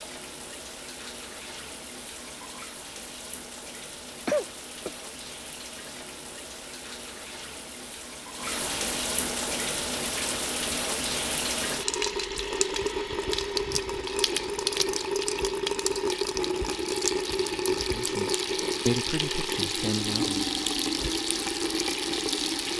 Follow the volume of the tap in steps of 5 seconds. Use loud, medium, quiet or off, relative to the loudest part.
quiet, medium, loud, loud, loud.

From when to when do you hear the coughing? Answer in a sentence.
You can hear the coughing from 4.2 to 4.9 s.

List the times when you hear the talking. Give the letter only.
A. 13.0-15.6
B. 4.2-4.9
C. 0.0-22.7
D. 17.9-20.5
D.